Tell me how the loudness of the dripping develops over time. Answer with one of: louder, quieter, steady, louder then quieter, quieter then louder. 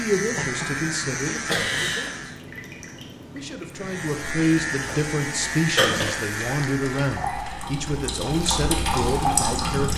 louder.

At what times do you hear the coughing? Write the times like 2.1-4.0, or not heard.
1.4-2.1, 5.8-6.7.